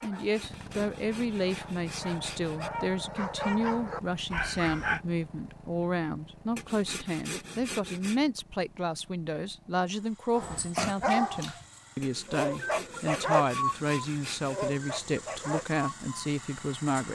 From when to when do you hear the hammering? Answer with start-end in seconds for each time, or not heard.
not heard.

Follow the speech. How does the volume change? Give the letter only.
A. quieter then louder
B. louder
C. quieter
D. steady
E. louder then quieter
D.